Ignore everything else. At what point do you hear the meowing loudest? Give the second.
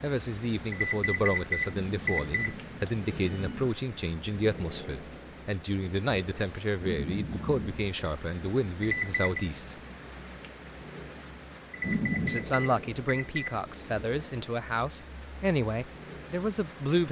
12 s.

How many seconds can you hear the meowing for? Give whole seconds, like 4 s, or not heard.
4 s.